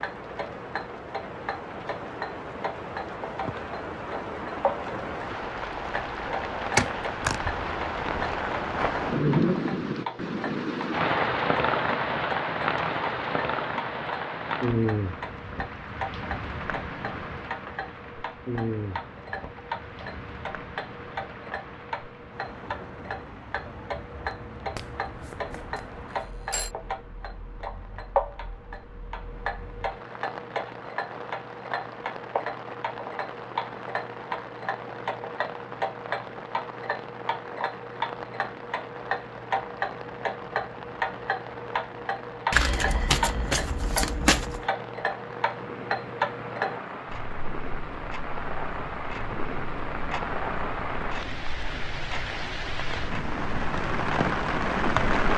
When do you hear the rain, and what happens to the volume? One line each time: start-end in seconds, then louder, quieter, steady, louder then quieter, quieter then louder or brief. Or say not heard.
0.0-55.3 quieter then louder.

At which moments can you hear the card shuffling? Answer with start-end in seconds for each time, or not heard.
6.7-7.4, 24.8-25.8, 42.5-44.6.